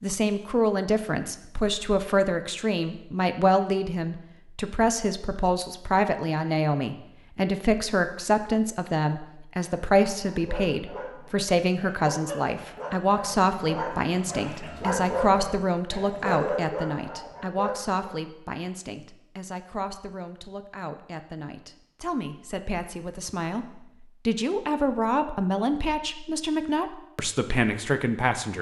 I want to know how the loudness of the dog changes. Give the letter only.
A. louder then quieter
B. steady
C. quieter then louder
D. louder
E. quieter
D.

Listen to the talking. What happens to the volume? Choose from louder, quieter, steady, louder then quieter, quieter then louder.
quieter then louder.